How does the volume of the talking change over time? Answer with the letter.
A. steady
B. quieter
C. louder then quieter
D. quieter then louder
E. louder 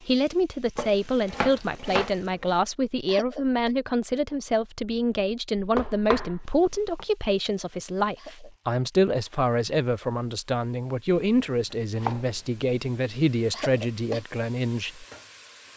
A.